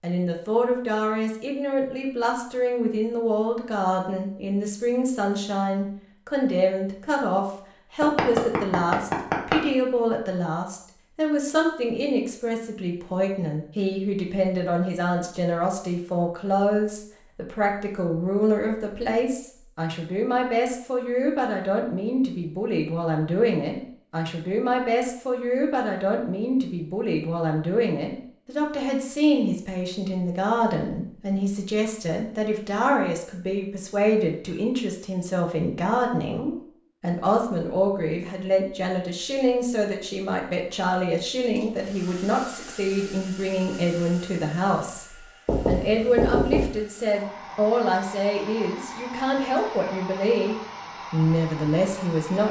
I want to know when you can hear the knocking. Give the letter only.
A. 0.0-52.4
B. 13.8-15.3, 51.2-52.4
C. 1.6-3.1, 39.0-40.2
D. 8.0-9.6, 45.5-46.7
D.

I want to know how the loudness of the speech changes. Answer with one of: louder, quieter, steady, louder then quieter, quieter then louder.
steady.